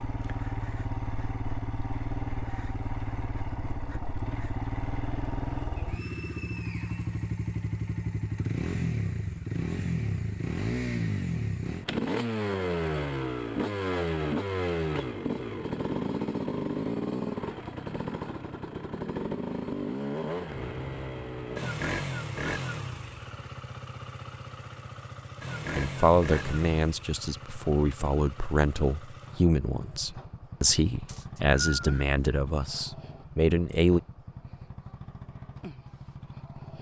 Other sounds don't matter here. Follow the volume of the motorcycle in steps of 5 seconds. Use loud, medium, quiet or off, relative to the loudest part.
medium, loud, loud, loud, medium, medium, quiet, quiet.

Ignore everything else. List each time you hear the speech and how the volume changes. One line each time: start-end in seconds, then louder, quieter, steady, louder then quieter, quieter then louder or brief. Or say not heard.
25.8-34.0 steady.